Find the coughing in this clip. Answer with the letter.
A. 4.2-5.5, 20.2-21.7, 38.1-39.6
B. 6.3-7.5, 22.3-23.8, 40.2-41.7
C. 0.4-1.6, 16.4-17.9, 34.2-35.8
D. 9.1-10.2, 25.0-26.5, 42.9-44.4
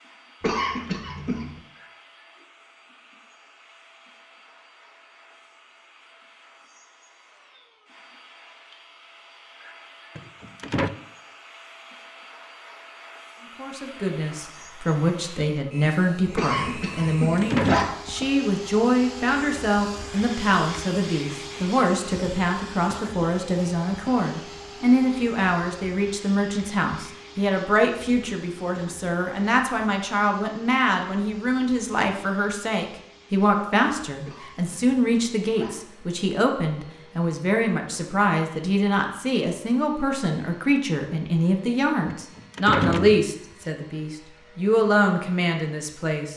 C.